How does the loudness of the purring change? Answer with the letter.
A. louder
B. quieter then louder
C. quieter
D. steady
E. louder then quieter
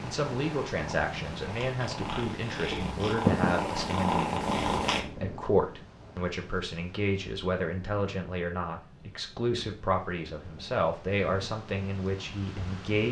A.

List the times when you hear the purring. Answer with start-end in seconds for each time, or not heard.
0.0-5.0.